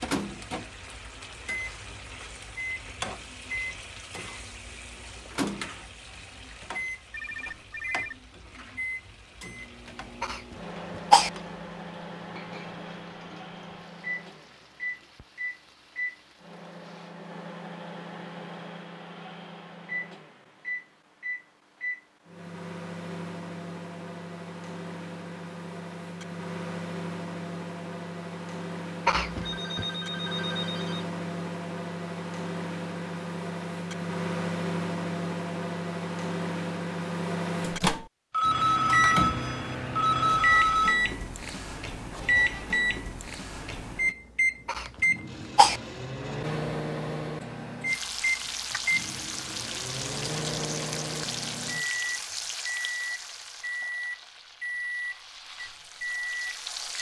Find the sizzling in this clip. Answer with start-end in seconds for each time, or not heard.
0.0-17.1, 47.9-56.9.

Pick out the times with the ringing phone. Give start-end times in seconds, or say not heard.
7.1-8.2, 29.4-31.1, 38.3-41.0.